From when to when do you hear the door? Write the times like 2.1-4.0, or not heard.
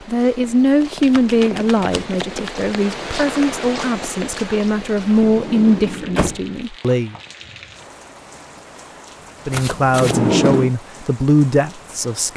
1.0-2.1, 5.2-6.4, 10.0-10.7.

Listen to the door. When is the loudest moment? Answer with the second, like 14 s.
10 s.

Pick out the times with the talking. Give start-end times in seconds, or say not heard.
0.1-7.2, 9.4-12.3.